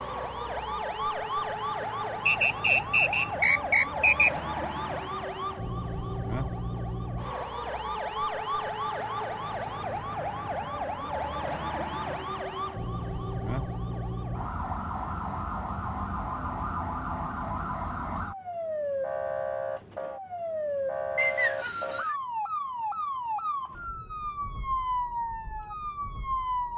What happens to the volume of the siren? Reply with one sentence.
The loudness of the siren stays about the same.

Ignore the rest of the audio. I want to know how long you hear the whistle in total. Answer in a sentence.
The whistle can be heard for 3 seconds in total.